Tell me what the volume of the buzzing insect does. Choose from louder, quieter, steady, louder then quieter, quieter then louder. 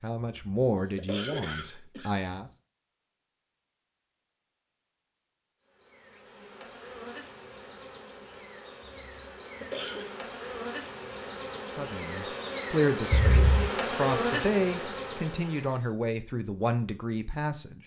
louder.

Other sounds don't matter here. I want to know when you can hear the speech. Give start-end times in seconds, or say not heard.
0.0-2.5, 11.7-17.8.